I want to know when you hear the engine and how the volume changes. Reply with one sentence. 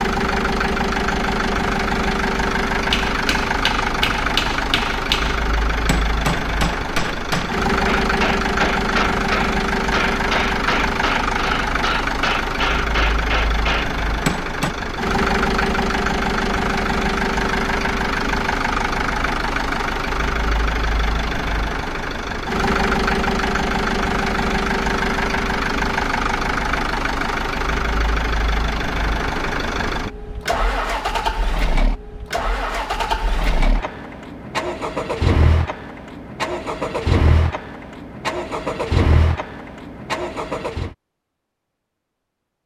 The engine can be heard from 0.0 to 41.0 s, at a steady volume.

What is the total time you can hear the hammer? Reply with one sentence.
You can hear the hammer for 12 seconds altogether.